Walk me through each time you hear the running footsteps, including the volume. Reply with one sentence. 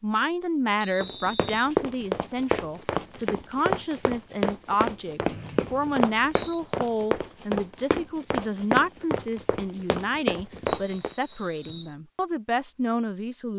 The running footsteps can be heard from 1.0 to 11.2 s, at a steady volume.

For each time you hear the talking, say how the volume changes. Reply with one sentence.
The talking can be heard from 0.0 to 13.5 s, at a steady volume.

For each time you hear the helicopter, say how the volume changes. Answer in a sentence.
The helicopter can't be heard in this clip.